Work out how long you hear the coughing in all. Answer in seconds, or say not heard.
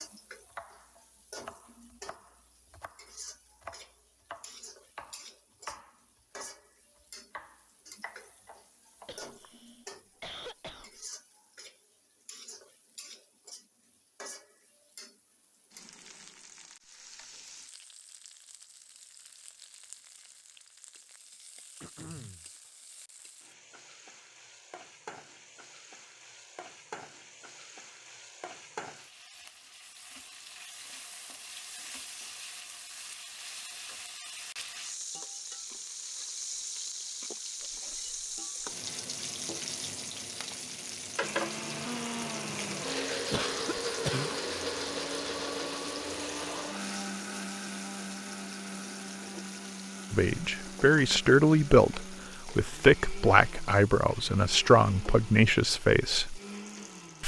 4 s.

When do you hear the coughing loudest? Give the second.
44 s.